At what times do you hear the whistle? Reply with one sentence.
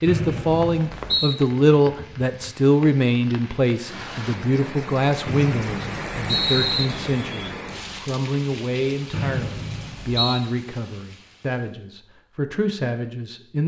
You can hear the whistle from 0.1 to 1.4 s, from 5.2 to 6.8 s and from 9.1 to 10.4 s.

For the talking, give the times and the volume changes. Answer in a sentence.
You can hear the talking from 0.0 to 13.6 s, getting quieter.